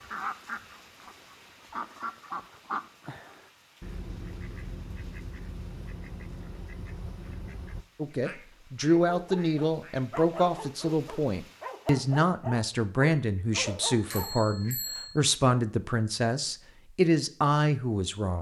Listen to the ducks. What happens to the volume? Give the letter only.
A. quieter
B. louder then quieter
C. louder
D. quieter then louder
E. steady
A.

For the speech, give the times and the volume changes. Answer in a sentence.
The speech can be heard from 8.0 to 18.3 s, at a steady volume.